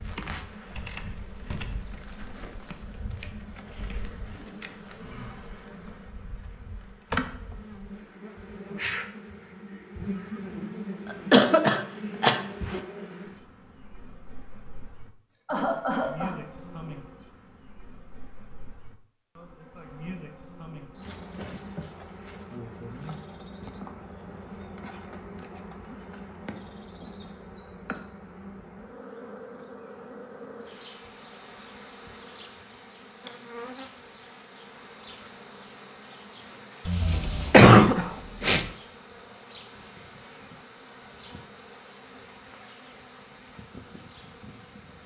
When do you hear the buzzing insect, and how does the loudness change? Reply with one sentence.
You can hear the buzzing insect from 0.0 to 45.0 s, getting quieter.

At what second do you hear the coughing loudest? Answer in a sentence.
The volume of the coughing peaks at 38 seconds.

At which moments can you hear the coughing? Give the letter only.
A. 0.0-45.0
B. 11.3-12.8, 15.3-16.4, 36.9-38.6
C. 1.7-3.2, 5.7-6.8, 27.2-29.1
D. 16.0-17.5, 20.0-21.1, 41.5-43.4
B.